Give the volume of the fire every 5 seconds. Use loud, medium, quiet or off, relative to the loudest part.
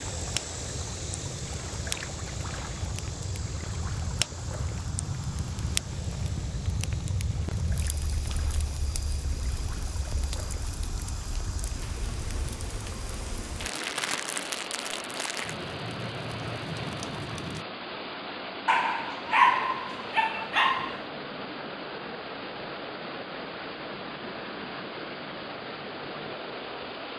loud, loud, loud, loud, off, off.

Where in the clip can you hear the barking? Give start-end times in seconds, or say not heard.
18.6-21.0.